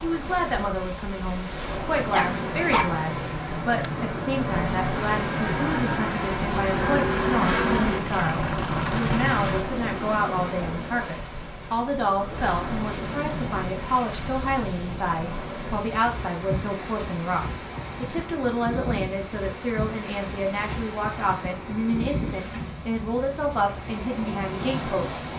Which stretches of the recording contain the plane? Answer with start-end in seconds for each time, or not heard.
2.1-9.6.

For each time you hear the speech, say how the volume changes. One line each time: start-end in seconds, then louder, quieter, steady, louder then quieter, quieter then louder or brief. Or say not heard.
0.0-25.1 steady.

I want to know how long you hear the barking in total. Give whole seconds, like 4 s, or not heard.
2 s.